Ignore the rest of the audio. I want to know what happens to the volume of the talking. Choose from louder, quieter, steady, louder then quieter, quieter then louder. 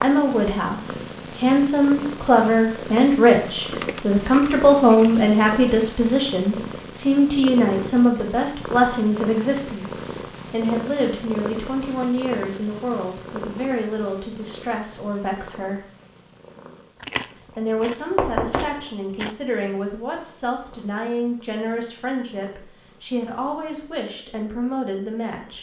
quieter.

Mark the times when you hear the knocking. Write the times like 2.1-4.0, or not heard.
18.1-18.8.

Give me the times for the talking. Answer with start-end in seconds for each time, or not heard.
0.0-15.8, 17.6-25.5.